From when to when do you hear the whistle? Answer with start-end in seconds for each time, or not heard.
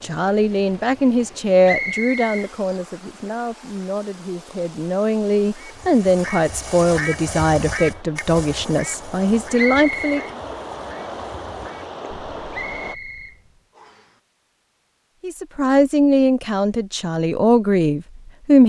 1.6-2.5, 9.6-10.3, 12.5-14.1.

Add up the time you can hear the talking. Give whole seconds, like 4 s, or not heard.
14 s.